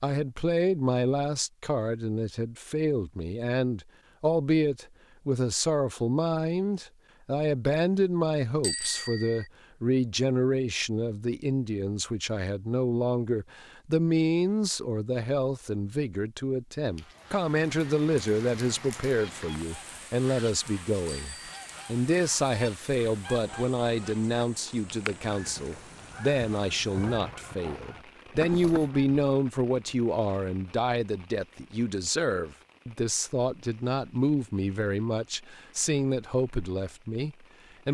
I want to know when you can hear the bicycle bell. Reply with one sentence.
The bicycle bell can be heard from 8.6 to 9.4 s and from 21.1 to 21.8 s.